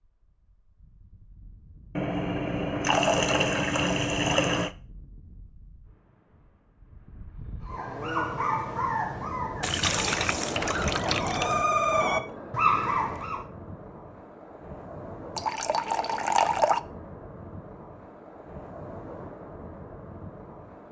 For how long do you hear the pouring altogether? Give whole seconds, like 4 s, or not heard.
6 s.